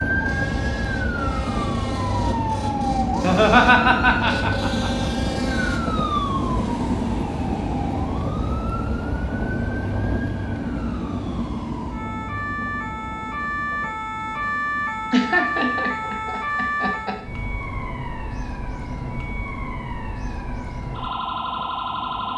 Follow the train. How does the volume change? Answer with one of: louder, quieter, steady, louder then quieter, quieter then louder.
quieter.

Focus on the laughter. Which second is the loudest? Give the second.
4 s.